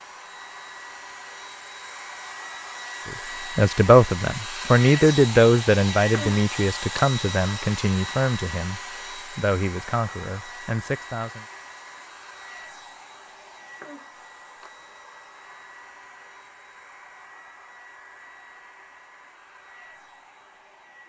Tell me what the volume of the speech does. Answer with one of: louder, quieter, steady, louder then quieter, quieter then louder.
quieter.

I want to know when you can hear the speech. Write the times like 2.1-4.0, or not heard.
3.0-11.4.